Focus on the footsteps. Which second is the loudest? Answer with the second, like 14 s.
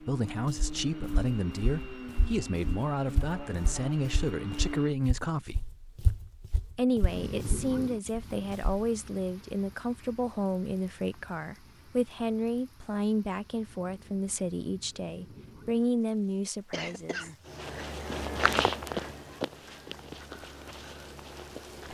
19 s.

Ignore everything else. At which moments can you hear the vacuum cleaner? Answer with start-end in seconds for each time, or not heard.
0.0-5.0.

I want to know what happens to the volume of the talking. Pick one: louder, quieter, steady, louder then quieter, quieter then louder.
steady.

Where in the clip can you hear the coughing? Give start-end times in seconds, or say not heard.
16.7-17.6.